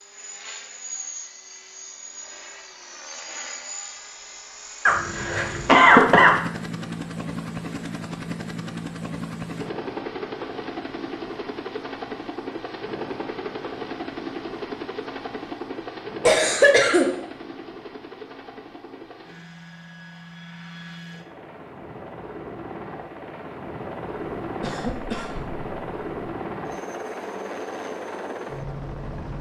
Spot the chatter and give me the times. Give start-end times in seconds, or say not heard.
not heard.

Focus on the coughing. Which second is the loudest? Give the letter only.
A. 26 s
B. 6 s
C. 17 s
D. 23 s
B.